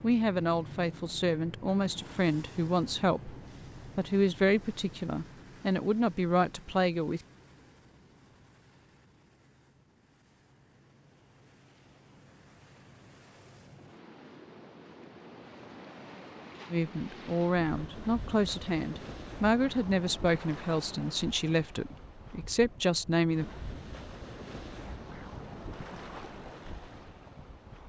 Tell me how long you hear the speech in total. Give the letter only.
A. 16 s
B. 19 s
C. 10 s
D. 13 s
D.